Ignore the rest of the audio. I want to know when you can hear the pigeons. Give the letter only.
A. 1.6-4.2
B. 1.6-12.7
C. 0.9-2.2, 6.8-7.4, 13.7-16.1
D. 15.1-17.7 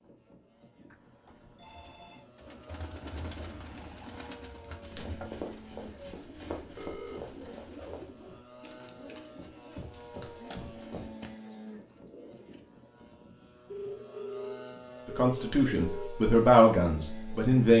B.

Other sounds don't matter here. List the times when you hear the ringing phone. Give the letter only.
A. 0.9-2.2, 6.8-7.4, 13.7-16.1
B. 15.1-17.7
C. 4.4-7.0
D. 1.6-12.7
A.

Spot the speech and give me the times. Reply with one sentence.
You can hear the speech from 15.1 to 17.7 s.